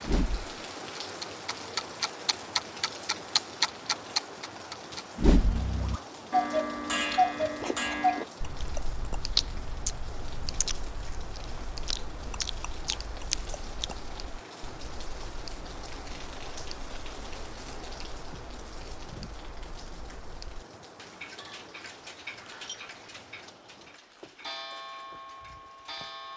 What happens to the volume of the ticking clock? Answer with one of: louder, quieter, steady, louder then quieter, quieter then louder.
quieter then louder.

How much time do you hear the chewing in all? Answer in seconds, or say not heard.
7 s.